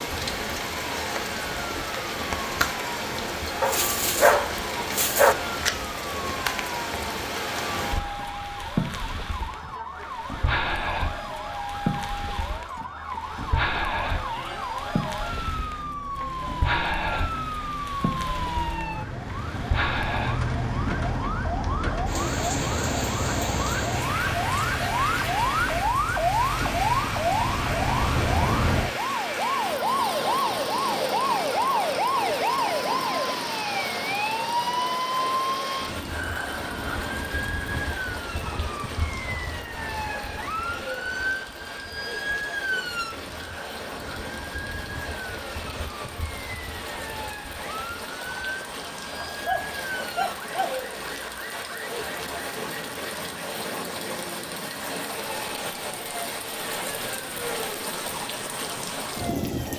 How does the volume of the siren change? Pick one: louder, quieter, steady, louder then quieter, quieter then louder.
louder then quieter.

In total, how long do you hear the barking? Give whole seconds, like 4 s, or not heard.
3 s.